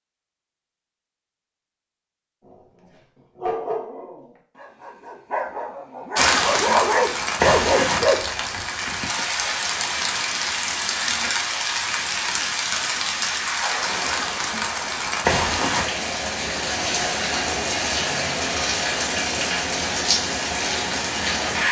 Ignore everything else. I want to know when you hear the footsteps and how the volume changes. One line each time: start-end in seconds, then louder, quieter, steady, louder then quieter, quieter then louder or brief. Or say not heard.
not heard.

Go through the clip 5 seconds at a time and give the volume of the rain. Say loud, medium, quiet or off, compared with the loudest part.
off, loud, loud, loud, loud.